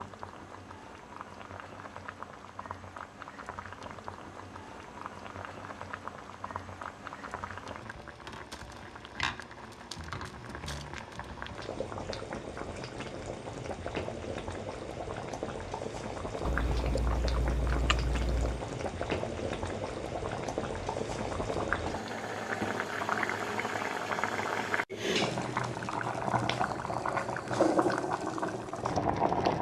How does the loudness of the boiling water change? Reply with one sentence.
The loudness of the boiling water goes up.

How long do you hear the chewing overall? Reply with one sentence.
The chewing can be heard for 2 seconds in total.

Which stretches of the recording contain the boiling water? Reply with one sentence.
You can hear the boiling water from 0.0 to 29.5 s.